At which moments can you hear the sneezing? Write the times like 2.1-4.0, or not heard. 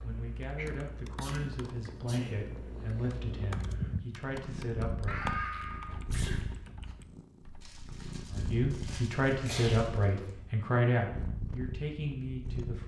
1.2-2.4, 5.0-7.0, 9.4-9.8.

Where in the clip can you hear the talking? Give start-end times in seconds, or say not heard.
0.0-5.2, 8.3-12.8.